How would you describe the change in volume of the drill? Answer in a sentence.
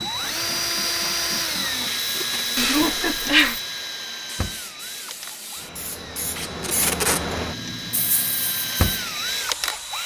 The loudness of the drill goes down, then up.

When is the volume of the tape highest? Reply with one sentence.
The loudest moment of the tape is at 7 seconds.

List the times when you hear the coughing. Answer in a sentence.
You can hear the coughing from 2.5 to 3.6 s.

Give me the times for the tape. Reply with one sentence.
The tape can be heard from 1.9 to 2.5 s and from 6.3 to 7.2 s.